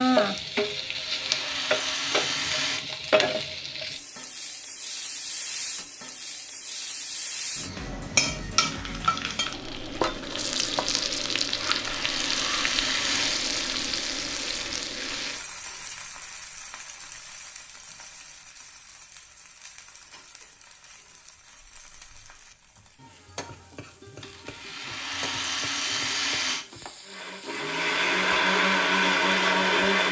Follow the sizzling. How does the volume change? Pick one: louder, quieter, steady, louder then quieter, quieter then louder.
quieter.